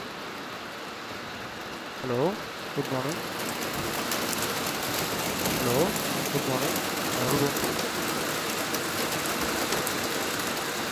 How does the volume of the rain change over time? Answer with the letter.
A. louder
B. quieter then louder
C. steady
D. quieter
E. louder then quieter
A.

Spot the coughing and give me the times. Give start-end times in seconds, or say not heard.
2.0-3.2, 5.5-7.7.